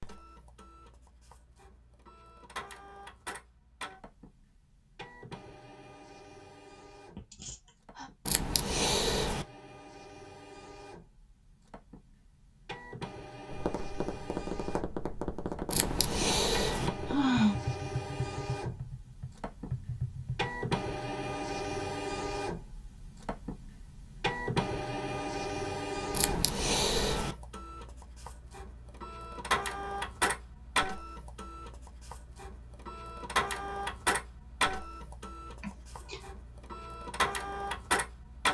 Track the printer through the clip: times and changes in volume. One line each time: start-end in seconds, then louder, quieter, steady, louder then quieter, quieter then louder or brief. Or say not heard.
0.0-38.4 louder.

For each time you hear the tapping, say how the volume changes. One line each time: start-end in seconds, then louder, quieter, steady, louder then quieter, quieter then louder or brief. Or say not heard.
13.4-20.5 steady.